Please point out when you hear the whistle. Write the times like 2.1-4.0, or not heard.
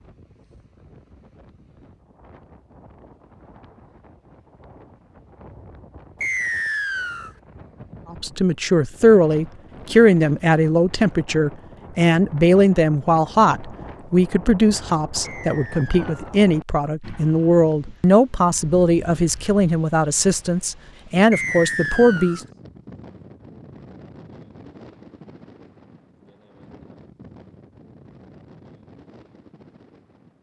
6.2-7.3, 15.2-16.4, 21.3-22.4.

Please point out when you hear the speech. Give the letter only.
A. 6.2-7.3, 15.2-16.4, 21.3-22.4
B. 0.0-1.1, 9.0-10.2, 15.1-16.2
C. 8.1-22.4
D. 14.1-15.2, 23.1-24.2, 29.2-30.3
C.